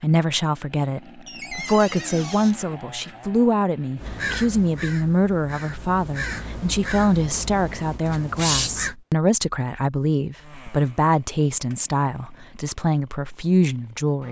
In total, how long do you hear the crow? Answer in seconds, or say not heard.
5 s.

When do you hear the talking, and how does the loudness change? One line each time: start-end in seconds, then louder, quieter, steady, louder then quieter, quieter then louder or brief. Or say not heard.
0.0-14.2 steady.